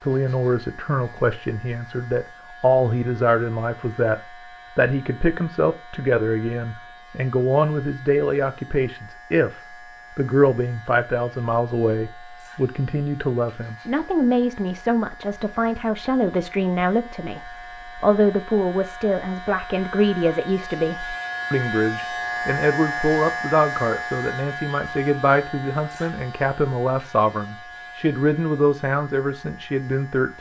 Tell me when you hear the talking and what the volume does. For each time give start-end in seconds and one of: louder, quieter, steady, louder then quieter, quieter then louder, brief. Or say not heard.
0.0-30.3 steady.